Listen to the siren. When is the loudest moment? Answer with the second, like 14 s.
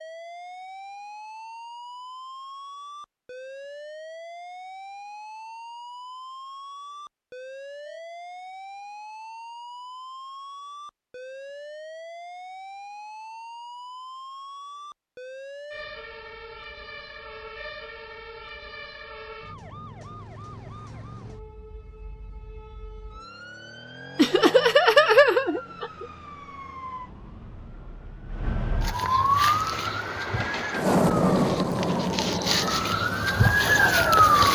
34 s.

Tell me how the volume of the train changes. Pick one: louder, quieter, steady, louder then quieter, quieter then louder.
louder then quieter.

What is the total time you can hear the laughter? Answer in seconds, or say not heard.
2 s.